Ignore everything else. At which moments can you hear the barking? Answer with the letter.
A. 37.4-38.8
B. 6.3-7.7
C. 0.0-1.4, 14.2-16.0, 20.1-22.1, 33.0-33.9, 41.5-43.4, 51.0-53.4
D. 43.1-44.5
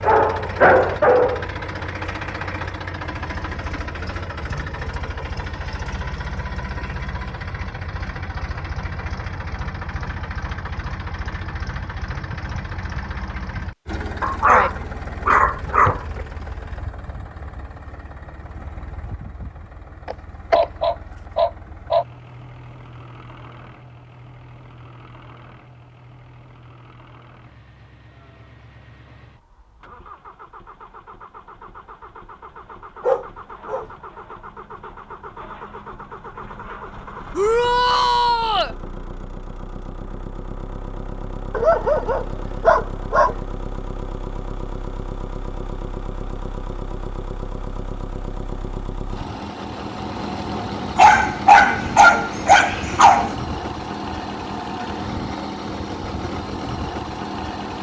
C.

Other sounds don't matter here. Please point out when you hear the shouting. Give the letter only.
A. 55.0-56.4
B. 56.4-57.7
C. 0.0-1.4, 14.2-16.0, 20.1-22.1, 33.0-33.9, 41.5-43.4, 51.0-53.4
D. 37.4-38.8
D.